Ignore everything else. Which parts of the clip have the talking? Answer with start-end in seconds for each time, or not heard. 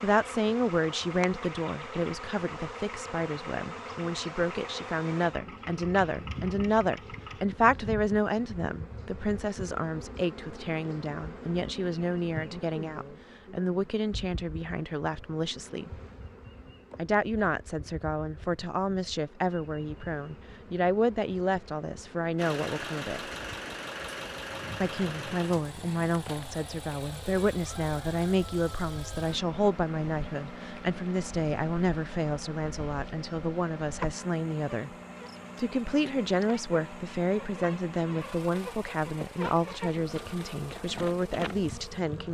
0.0-15.9, 16.9-23.2, 24.8-34.9, 35.5-42.2.